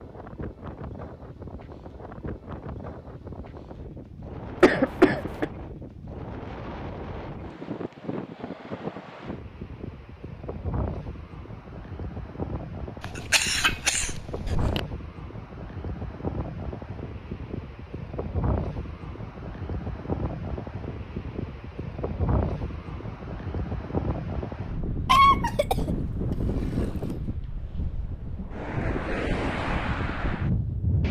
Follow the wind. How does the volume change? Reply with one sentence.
The volume of the wind goes up.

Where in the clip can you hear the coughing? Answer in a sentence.
You can hear the coughing from 4.6 to 5.5 s, from 13.0 to 14.8 s, from 25.1 to 25.9 s and from 26.6 to 27.1 s.